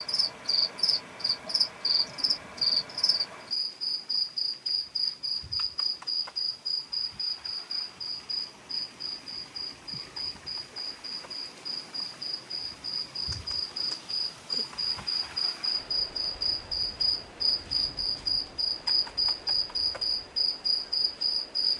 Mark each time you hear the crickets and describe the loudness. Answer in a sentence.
You can hear the crickets from 0.0 to 21.7 s, getting quieter then louder.